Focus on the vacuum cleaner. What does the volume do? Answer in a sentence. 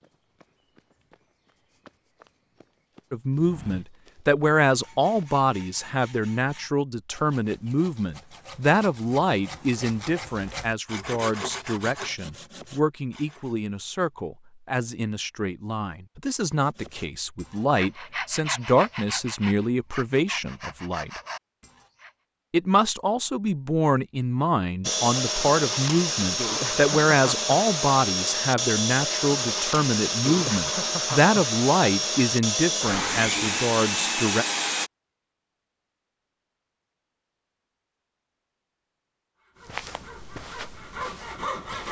The volume of the vacuum cleaner stays about the same.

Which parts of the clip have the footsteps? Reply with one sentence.
The footsteps can be heard from 0.0 to 5.2 s and from 39.6 to 41.8 s.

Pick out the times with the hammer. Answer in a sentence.
The hammer can't be heard in this clip.